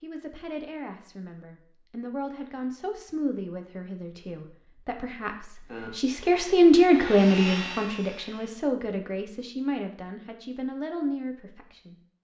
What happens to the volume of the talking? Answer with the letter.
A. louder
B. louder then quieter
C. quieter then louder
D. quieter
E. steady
B.